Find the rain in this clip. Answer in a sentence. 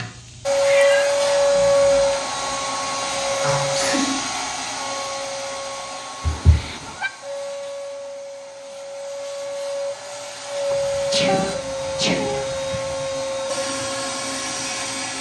The rain can't be heard in this clip.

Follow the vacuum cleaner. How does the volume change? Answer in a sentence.
The volume of the vacuum cleaner goes down, then up.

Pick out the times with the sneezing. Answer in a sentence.
You can hear the sneezing from 3.4 to 4.2 s and from 11.1 to 12.3 s.